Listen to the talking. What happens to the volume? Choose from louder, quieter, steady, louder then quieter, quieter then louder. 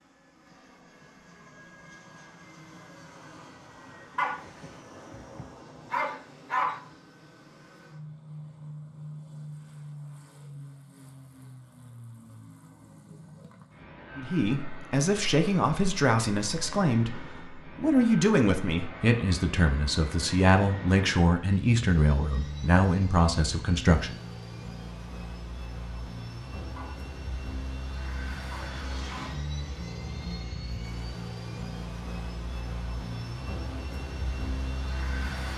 steady.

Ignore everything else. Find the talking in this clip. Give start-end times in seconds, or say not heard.
14.2-24.2.